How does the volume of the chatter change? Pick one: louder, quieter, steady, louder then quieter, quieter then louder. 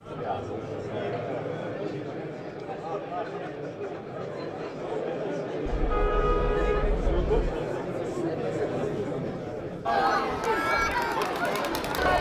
louder.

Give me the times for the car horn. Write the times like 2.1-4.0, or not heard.
5.7-7.5.